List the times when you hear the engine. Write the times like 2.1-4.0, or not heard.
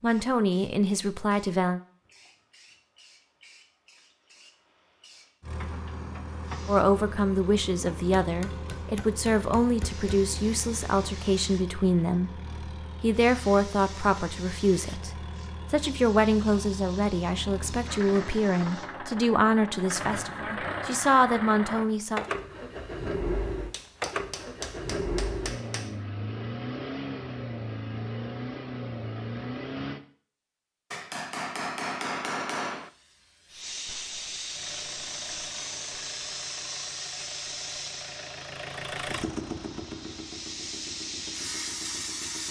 5.4-30.0, 34.5-42.4.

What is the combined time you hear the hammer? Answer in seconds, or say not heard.
6 s.